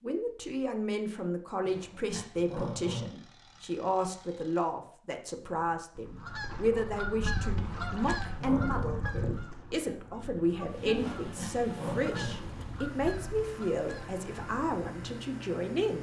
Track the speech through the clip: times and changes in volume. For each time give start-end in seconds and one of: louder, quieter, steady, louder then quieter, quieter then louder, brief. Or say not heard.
0.0-15.9 steady.